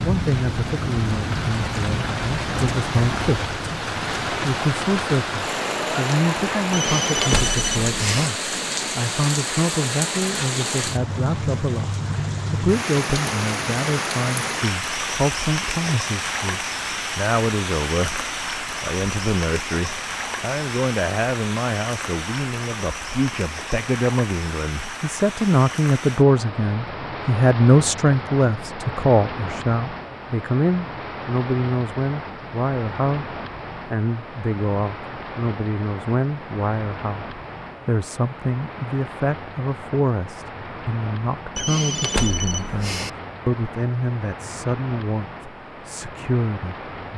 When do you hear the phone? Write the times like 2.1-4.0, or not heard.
6.7-8.3, 41.5-43.1.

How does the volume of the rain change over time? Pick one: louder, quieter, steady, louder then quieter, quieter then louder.
quieter.